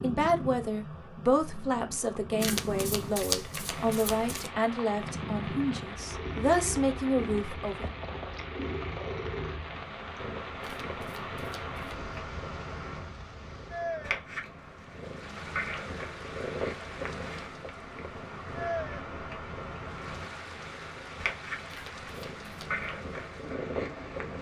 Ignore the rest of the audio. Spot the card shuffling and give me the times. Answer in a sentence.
The card shuffling can be heard from 2.4 to 4.5 s, from 10.6 to 12.1 s and from 21.6 to 22.9 s.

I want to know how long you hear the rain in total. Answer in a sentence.
The rain can be heard for 21 seconds in total.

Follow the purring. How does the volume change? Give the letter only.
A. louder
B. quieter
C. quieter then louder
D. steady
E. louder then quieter
D.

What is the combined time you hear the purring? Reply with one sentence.
You can hear the purring for 24 seconds altogether.